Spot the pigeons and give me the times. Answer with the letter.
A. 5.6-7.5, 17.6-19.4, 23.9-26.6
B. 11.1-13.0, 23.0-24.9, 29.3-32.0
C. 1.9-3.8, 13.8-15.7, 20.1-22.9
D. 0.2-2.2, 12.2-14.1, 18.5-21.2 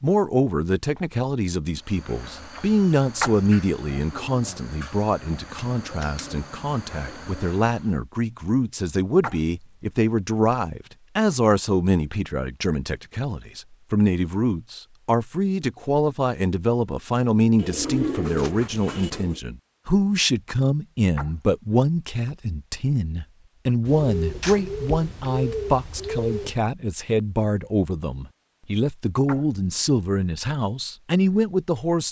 A.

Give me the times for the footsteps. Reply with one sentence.
You can't hear the footsteps here.